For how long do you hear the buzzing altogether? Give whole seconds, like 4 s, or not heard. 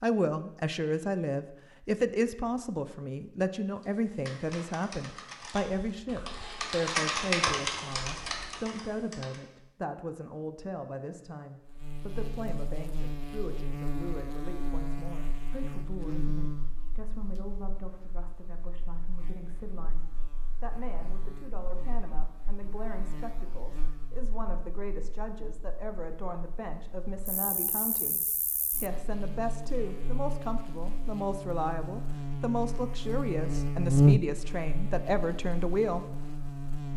25 s.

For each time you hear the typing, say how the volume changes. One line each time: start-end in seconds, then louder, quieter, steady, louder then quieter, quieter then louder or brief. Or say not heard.
3.8-9.4 louder then quieter.